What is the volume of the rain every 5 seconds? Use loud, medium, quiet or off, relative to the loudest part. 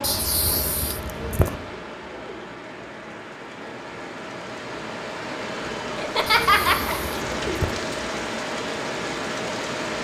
medium, loud.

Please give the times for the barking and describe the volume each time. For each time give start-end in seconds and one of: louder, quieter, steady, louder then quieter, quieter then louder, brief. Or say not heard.
not heard.